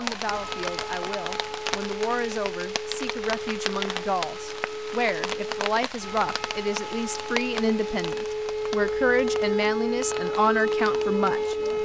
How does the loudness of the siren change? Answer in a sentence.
The volume of the siren goes up.